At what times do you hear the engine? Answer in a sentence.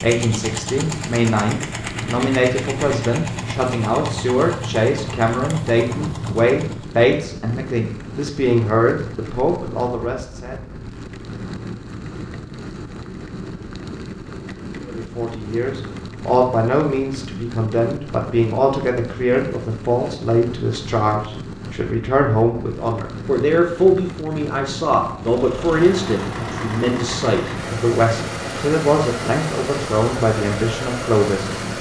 The engine can be heard from 0.0 to 7.0 s and from 25.2 to 31.7 s.